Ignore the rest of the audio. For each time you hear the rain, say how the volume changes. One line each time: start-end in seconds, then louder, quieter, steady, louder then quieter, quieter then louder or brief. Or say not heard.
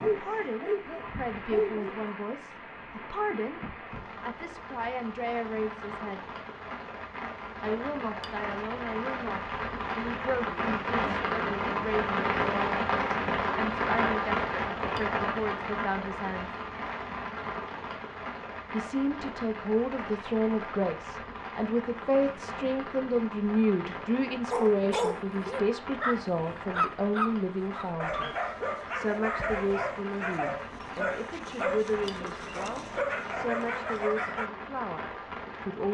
0.0-35.8 louder then quieter.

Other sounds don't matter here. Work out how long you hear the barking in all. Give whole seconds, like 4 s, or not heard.
12 s.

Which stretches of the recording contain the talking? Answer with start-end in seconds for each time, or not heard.
0.0-6.2, 7.6-16.6, 18.7-28.3, 28.9-35.8.